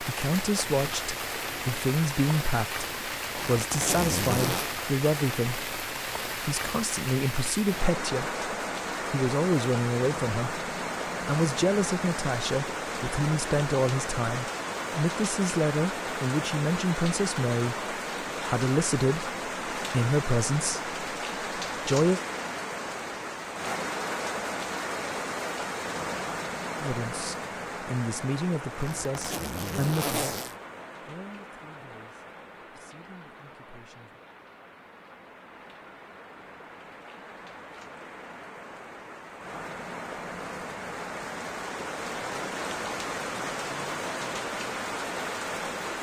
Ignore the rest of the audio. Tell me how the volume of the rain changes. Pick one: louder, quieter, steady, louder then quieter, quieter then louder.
quieter then louder.